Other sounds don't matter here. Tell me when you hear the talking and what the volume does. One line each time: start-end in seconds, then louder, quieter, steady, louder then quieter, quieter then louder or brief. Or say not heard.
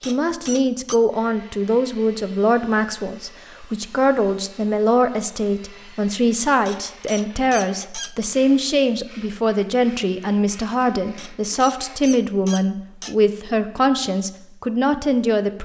0.1-15.5 steady.